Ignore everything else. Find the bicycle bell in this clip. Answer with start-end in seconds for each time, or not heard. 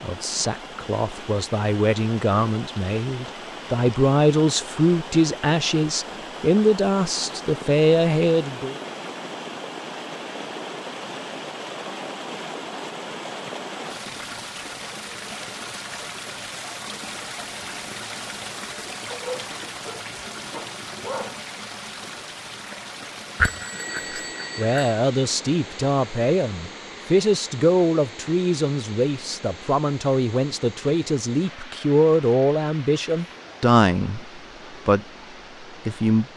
23.4-25.0.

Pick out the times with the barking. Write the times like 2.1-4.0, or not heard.
19.1-21.4.